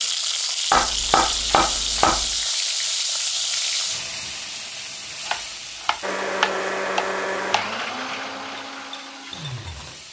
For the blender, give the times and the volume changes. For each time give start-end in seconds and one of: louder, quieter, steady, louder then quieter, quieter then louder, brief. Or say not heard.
6.0-10.0 quieter.